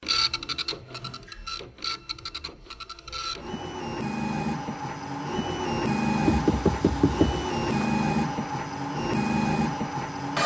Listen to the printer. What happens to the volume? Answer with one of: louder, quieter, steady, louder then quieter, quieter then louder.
louder.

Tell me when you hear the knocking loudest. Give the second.
7 s.